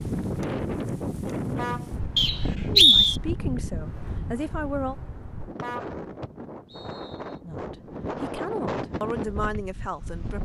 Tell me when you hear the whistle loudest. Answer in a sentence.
The volume of the whistle peaks at 3 seconds.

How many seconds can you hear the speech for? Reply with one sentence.
The speech can be heard for 5 seconds in total.